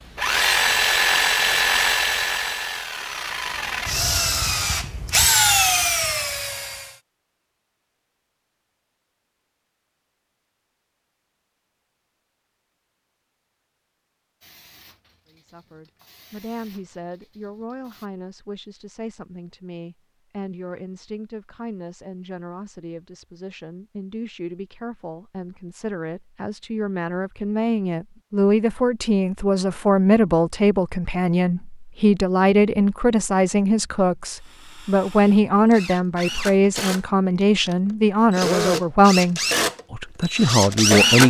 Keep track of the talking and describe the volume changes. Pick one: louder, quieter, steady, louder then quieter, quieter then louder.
louder.